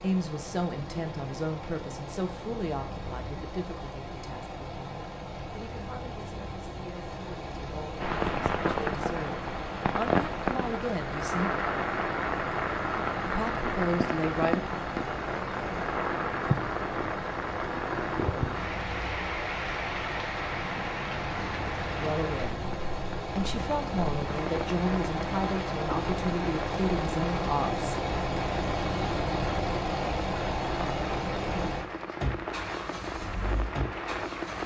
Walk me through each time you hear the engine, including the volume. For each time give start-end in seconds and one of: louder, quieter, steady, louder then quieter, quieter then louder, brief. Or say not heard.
0.0-34.6 louder.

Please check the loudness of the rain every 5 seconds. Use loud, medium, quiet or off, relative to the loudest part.
off, loud, loud, loud, medium, medium, medium.